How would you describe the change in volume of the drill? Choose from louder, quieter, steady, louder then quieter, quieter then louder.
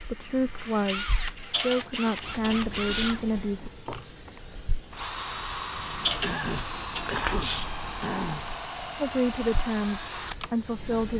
steady.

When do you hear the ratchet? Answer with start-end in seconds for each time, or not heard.
1.5-3.2, 6.0-7.7.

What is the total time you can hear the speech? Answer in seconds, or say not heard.
6 s.